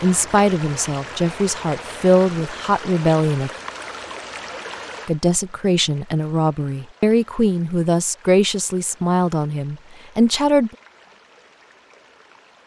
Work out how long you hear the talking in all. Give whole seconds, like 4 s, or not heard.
9 s.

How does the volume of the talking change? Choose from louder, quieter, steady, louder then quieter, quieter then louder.
steady.